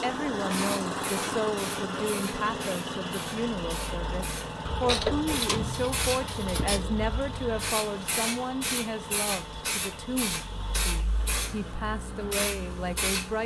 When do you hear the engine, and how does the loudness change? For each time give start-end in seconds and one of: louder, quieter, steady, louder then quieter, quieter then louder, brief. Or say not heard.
0.0-13.4 quieter.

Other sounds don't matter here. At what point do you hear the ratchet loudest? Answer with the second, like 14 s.
5 s.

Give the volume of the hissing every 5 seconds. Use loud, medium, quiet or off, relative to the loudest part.
medium, loud, loud.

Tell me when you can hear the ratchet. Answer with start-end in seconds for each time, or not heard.
4.7-7.1.